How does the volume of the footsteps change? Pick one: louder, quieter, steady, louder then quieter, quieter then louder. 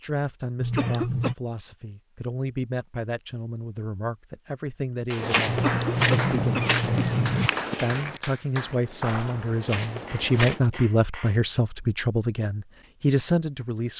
quieter then louder.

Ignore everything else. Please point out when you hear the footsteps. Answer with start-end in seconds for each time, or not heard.
5.2-10.6.